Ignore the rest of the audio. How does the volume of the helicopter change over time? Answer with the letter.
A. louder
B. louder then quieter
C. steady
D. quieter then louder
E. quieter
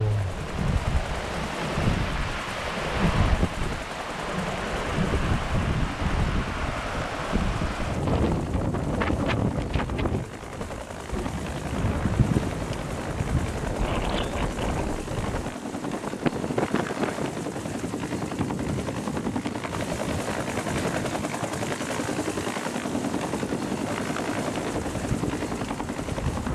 A.